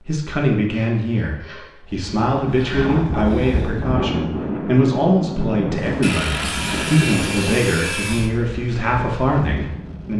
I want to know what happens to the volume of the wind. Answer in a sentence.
The loudness of the wind goes down.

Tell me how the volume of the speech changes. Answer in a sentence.
The loudness of the speech stays about the same.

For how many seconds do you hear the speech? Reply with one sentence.
The speech can be heard for 10 seconds in total.